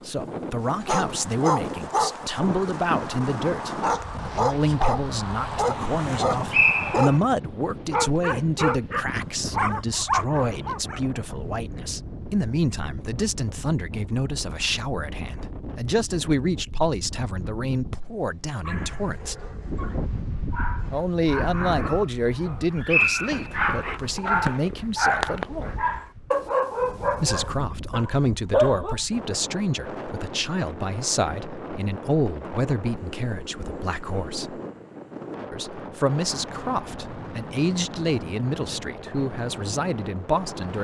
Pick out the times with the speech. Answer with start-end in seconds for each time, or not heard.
0.1-19.4, 20.9-25.8, 27.1-34.6, 35.5-40.7.